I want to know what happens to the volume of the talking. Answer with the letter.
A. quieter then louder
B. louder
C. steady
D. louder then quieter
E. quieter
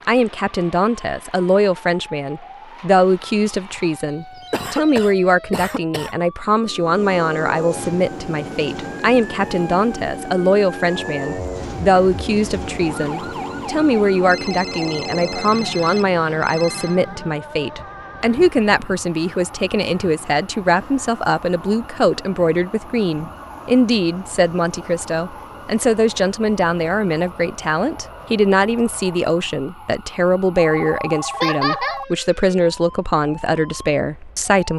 C.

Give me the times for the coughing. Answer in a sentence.
The coughing can be heard from 4.5 to 6.2 s and from 31.4 to 32.0 s.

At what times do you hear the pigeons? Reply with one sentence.
The pigeons can't be heard in this clip.